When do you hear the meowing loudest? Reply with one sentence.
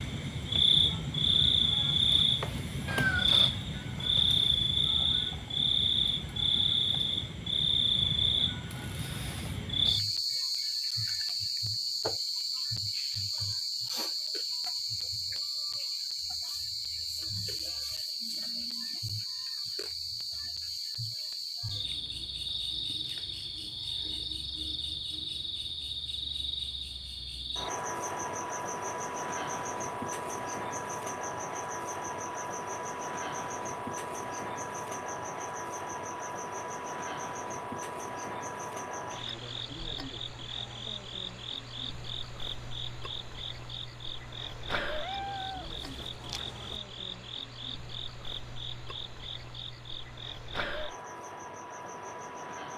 The volume of the meowing peaks at 3 seconds.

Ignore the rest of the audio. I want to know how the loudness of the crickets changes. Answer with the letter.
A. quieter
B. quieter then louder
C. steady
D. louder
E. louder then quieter
A.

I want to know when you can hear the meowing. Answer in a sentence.
You can hear the meowing from 2.9 to 3.5 s and from 45.0 to 46.8 s.